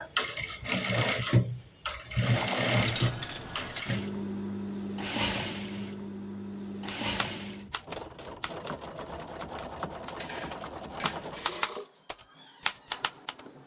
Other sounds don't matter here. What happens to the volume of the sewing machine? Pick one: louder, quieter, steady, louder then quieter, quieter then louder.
quieter.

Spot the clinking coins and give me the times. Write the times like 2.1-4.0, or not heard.
2.9-3.8, 10.2-11.7.